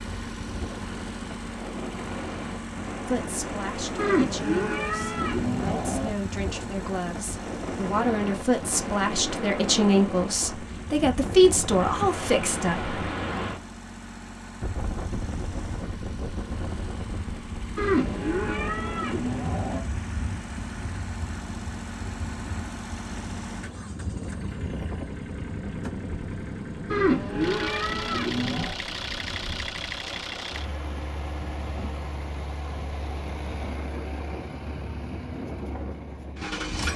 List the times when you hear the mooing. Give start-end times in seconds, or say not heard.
4.0-6.1, 17.8-19.8, 26.9-28.8.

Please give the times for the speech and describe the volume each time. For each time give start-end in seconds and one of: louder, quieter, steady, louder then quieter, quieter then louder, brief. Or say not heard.
3.0-12.9 louder.